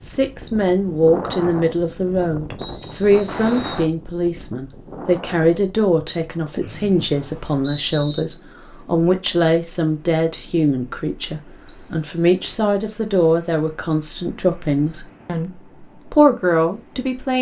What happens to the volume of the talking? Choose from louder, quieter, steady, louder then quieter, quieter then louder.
steady.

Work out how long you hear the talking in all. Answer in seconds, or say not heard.
17 s.